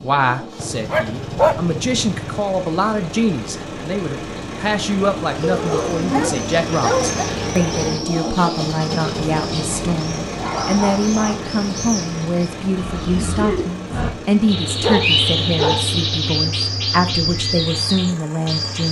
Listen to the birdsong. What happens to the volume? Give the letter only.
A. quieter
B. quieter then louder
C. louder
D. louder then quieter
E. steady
C.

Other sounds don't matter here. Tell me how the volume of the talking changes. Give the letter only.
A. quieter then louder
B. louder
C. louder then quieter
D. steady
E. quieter
D.